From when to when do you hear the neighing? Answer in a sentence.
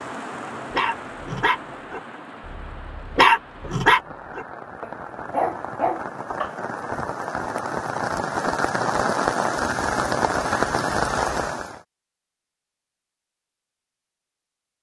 The neighing can't be heard in this clip.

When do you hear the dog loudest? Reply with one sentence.
The loudest moment of the dog is at 3 seconds.